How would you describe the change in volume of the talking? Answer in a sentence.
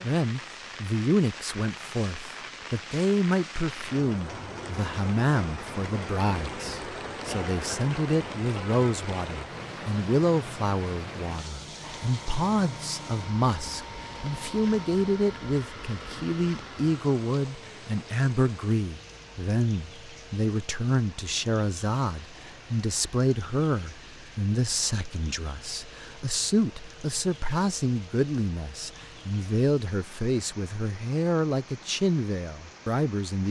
The loudness of the talking stays about the same.